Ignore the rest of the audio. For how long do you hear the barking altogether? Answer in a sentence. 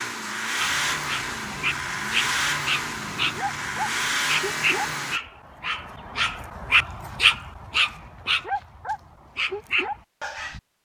You can hear the barking for 10 seconds altogether.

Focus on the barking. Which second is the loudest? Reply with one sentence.
The loudest moment of the barking is at 7 seconds.